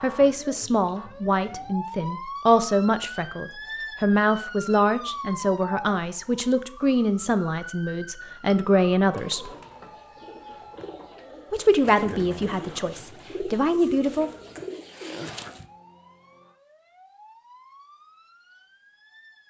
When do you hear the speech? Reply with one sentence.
You can hear the speech from 0.0 to 9.5 s and from 11.5 to 14.3 s.